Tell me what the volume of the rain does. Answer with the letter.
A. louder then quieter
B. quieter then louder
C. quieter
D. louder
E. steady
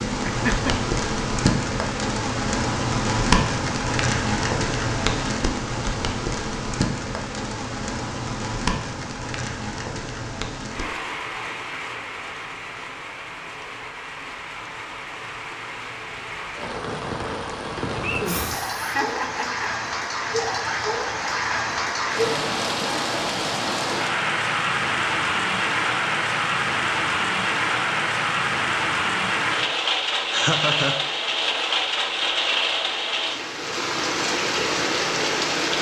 B.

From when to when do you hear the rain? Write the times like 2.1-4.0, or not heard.
0.0-35.7.